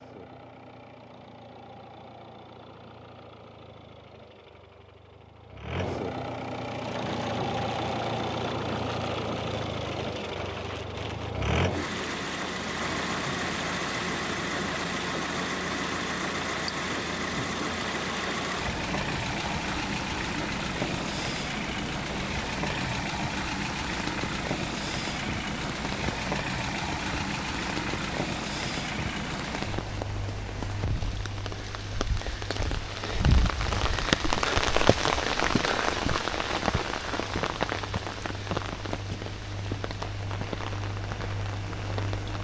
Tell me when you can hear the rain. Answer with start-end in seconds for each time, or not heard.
6.8-42.3.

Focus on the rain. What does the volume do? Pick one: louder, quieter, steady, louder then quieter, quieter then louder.
louder.